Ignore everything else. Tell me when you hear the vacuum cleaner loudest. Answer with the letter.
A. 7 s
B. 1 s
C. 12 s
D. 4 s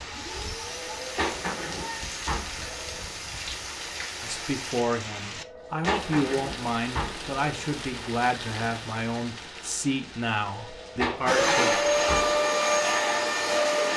C.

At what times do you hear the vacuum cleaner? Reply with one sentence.
You can hear the vacuum cleaner from 0.0 to 4.7 s and from 11.2 to 13.9 s.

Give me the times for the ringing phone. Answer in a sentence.
The ringing phone can be heard from 0.7 to 3.0 s, from 5.3 to 7.3 s and from 10.5 to 12.3 s.